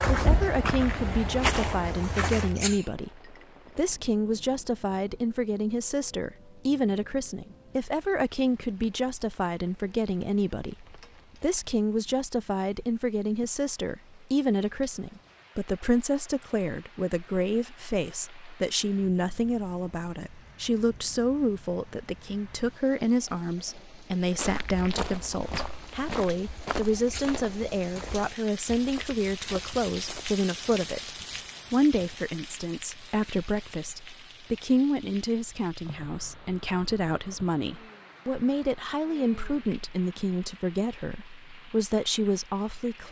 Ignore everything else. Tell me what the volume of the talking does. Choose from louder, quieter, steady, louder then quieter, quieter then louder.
steady.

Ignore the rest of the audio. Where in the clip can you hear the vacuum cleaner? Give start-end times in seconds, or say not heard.
not heard.